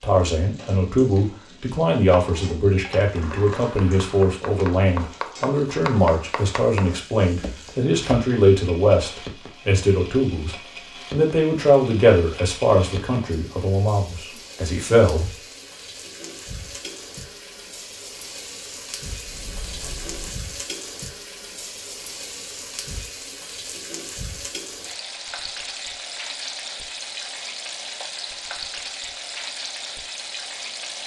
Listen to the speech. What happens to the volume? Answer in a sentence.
The volume of the speech stays about the same.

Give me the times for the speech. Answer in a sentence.
The speech can be heard from 0.0 to 15.4 s.